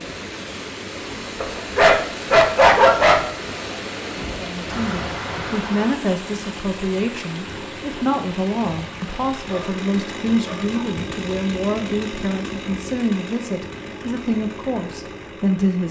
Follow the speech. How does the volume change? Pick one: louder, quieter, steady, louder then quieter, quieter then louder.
steady.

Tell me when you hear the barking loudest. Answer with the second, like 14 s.
3 s.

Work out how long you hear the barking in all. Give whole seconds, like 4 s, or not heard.
3 s.